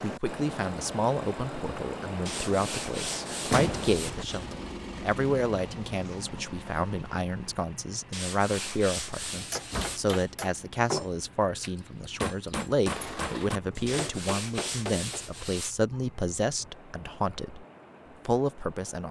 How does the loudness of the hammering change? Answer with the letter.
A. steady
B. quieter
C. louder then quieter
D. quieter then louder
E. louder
C.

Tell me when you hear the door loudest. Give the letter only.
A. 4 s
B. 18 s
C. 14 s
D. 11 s
A.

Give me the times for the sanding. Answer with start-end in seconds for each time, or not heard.
2.2-4.5, 8.1-10.3, 13.8-15.8.